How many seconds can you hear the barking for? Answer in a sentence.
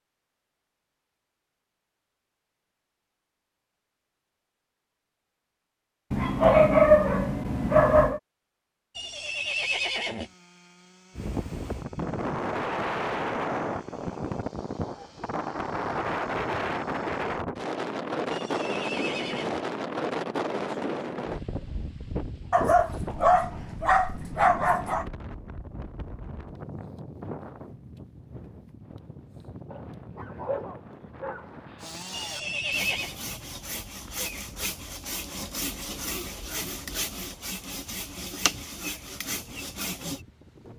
The barking can be heard for 7 seconds in total.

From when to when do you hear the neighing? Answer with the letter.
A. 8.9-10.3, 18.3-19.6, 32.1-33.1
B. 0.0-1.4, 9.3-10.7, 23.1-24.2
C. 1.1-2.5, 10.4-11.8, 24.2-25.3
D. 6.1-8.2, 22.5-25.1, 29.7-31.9
A.